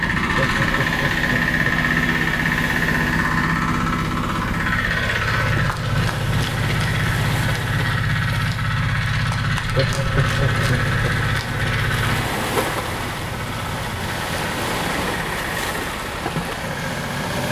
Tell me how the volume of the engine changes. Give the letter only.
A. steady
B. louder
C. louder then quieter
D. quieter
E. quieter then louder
D.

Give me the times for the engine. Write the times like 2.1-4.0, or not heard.
0.0-17.4.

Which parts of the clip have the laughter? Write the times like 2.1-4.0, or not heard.
0.2-1.6, 9.6-11.2.